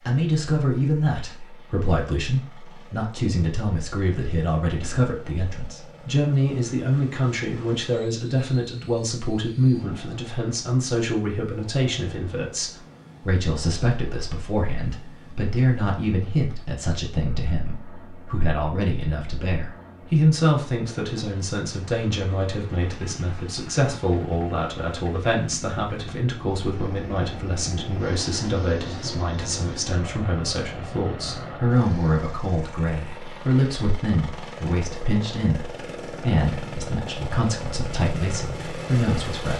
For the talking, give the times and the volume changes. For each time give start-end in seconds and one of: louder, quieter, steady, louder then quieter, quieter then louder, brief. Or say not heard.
0.1-39.5 steady.